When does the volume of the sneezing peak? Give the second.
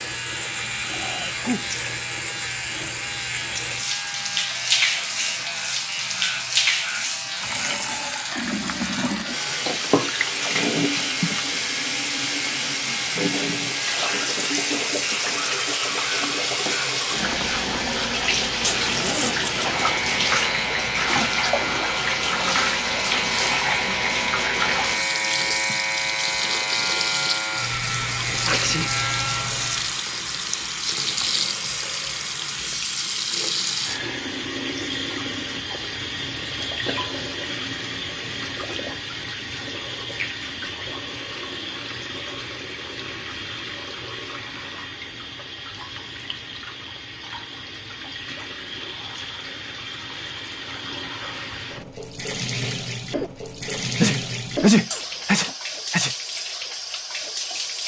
55 s.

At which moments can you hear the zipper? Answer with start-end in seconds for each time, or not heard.
18.6-20.3, 54.9-55.4.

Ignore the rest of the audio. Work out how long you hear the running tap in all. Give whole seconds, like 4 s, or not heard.
58 s.